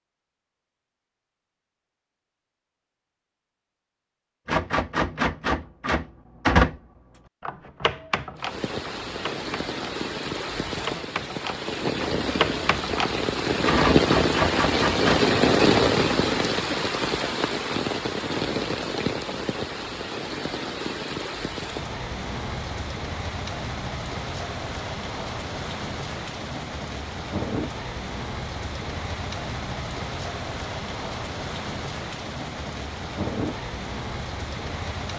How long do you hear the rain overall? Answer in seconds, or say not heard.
27 s.